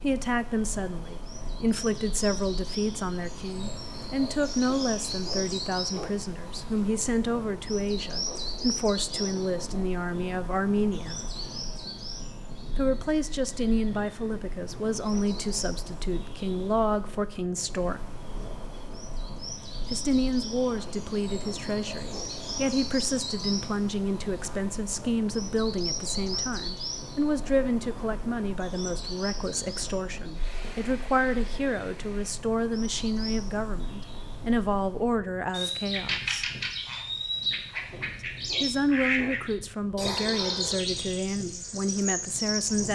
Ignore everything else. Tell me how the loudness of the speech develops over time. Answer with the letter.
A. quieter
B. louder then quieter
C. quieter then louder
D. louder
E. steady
E.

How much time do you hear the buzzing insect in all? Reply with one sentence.
You can't hear the buzzing insect here.